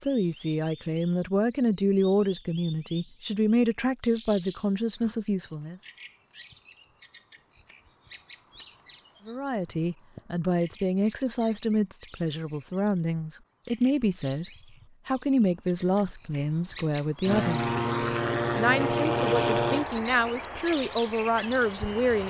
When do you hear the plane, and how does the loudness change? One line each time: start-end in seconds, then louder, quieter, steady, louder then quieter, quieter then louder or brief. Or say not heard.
17.2-22.2 quieter.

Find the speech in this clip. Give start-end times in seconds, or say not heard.
0.0-5.8, 9.2-22.2.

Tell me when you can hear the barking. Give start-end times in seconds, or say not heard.
not heard.